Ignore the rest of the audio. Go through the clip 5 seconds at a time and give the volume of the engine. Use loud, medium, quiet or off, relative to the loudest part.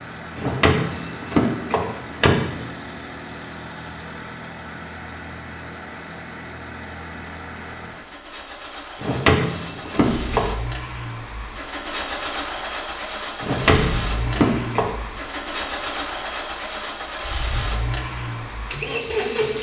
medium, medium, loud, loud.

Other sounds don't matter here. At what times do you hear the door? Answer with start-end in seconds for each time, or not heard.
0.3-2.7, 9.0-10.5, 13.4-14.9.